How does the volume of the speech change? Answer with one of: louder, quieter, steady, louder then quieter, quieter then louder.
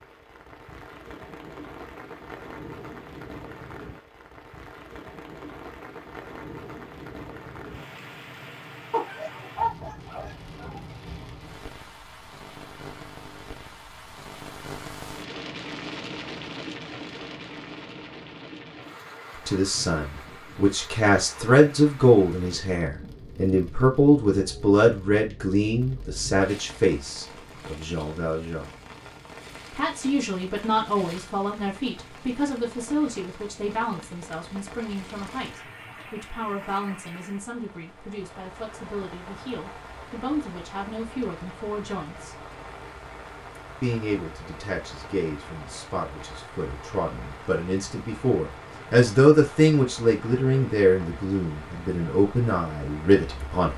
quieter then louder.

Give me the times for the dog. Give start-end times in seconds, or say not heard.
8.9-10.8.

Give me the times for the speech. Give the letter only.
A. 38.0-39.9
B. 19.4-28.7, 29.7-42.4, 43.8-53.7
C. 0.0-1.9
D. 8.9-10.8
B.